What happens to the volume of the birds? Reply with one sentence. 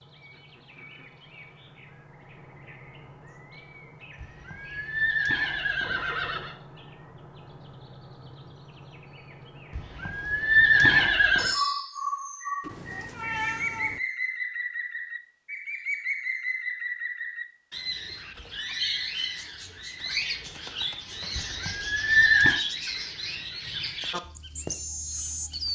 The volume of the birds goes up.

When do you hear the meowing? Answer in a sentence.
The meowing can be heard from 12.6 to 14.0 s.